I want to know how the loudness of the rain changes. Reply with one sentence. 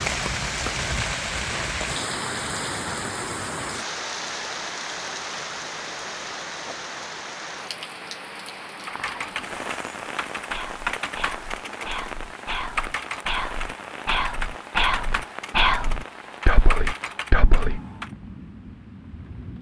The loudness of the rain goes down.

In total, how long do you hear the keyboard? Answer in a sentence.
You can hear the keyboard for 9 seconds altogether.